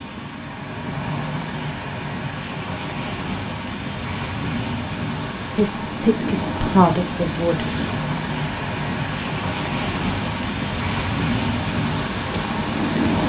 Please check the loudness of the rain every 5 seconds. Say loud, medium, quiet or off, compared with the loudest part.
medium, loud, loud.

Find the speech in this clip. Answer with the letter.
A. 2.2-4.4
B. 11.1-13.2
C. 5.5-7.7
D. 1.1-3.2
C.